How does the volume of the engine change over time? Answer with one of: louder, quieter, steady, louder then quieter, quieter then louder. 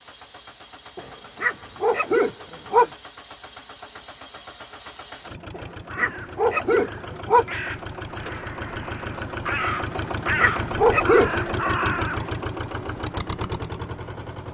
louder.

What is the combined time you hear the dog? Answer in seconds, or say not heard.
5 s.